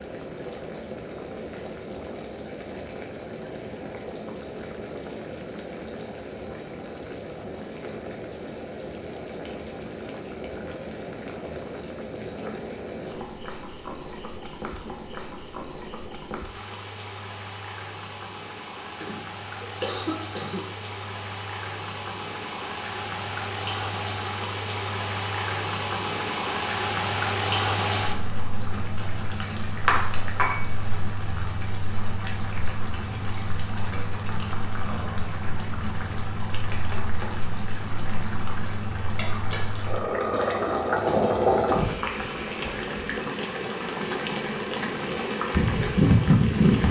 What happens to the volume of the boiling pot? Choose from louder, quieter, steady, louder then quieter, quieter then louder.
louder.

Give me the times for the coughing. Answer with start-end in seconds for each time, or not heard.
18.9-20.6, 40.9-41.4.